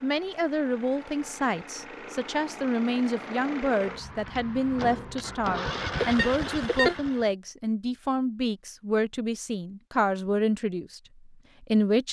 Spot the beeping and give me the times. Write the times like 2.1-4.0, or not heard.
6.0-7.0.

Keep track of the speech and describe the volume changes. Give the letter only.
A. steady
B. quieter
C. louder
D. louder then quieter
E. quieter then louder
A.